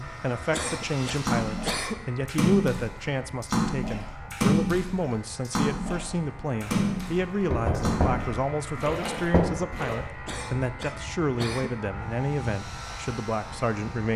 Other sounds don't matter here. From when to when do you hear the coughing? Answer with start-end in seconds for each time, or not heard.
0.5-2.1, 10.2-11.8.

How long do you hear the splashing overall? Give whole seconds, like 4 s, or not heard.
9 s.